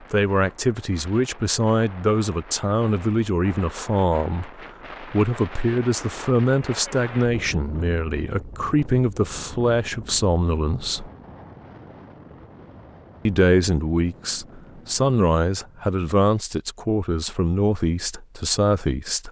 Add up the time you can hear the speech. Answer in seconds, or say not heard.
17 s.